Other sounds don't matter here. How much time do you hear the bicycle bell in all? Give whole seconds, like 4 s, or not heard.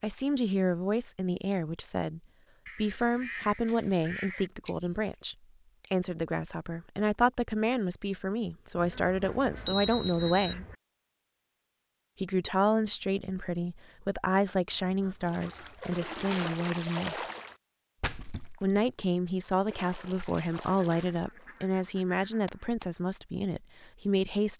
2 s.